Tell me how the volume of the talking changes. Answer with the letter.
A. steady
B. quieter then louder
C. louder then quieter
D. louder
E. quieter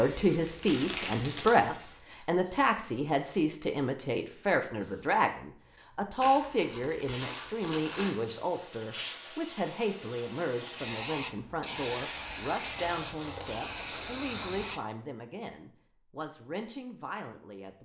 E.